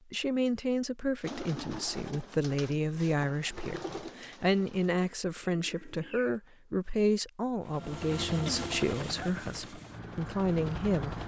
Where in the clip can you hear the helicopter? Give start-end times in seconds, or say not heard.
7.7-11.2.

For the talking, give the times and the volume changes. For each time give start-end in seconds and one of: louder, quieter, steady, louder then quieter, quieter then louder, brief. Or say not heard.
0.1-11.2 steady.